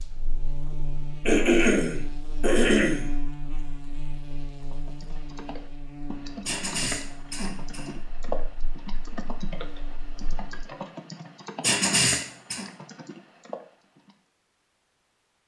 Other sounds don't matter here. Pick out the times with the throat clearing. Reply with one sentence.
You can hear the throat clearing from 1.2 to 3.1 s, from 6.5 to 8.0 s and from 11.6 to 12.7 s.